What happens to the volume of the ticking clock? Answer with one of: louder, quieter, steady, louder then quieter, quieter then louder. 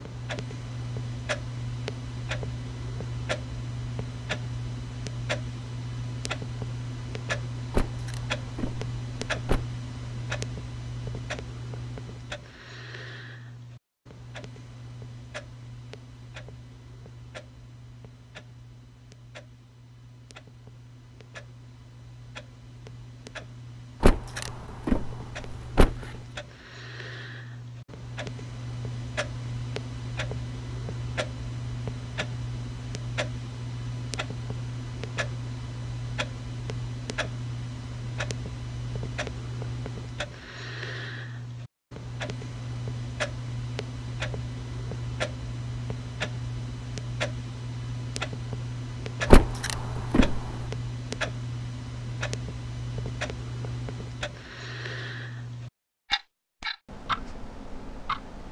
quieter then louder.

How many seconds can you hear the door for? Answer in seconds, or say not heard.
5 s.